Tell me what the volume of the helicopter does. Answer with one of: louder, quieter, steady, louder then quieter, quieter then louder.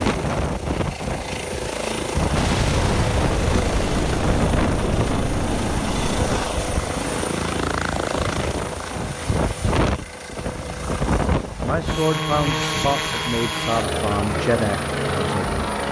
steady.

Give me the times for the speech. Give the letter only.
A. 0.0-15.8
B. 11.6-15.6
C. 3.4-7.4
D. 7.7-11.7
B.